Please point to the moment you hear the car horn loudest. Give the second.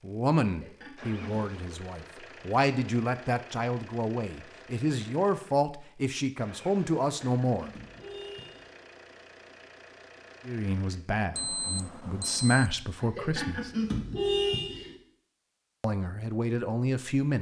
14 s.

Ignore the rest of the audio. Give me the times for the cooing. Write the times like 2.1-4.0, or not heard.
not heard.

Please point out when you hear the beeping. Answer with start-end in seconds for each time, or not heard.
11.3-12.7.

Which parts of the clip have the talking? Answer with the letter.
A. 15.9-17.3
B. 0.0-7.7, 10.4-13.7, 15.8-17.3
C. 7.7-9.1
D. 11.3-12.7
B.